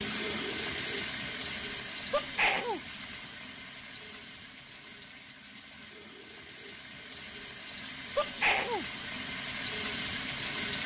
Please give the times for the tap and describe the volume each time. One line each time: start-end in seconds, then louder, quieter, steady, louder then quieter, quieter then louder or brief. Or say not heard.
0.0-10.8 quieter then louder.